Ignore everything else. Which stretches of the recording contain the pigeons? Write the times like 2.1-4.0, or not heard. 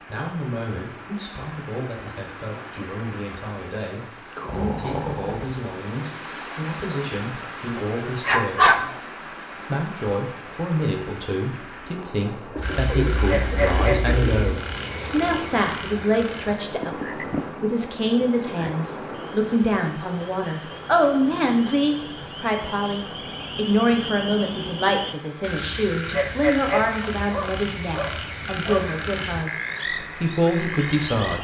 12.6-14.6.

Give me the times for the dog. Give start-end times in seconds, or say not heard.
7.8-8.9, 27.0-28.9.